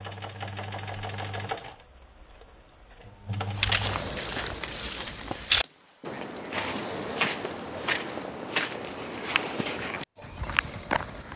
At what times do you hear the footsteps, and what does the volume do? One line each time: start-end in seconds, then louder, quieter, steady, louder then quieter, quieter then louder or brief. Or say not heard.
3.5-11.3 louder then quieter.